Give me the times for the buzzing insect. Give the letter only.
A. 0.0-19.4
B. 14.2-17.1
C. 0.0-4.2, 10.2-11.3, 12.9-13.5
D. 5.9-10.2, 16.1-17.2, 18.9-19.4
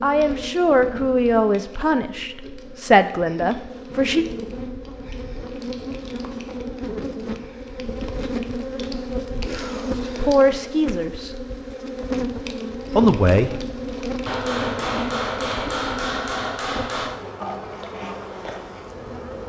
A.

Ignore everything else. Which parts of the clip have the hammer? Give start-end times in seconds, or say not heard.
14.2-17.1.